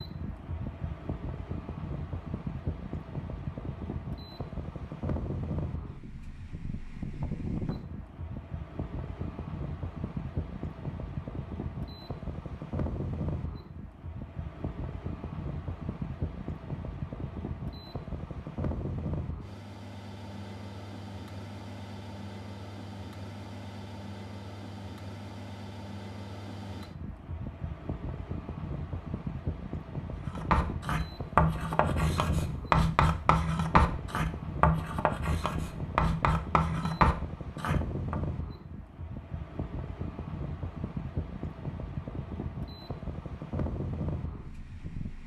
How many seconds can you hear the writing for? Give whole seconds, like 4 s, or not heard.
8 s.